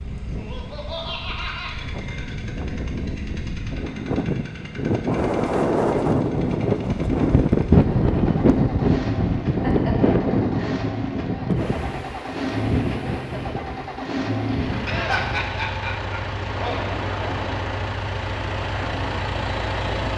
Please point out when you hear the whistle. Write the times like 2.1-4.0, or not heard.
not heard.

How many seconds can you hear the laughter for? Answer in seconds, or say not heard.
5 s.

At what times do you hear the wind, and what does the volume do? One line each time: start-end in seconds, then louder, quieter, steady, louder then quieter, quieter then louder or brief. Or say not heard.
0.0-20.1 louder then quieter.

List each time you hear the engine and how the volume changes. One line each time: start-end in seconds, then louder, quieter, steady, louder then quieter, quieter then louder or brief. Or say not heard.
0.0-20.1 louder.